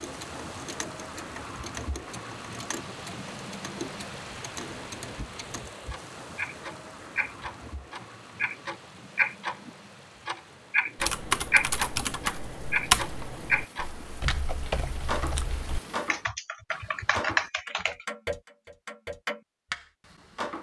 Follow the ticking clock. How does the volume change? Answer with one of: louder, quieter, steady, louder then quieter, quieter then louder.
louder then quieter.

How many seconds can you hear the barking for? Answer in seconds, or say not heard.
not heard.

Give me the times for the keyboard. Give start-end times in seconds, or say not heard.
10.9-18.1.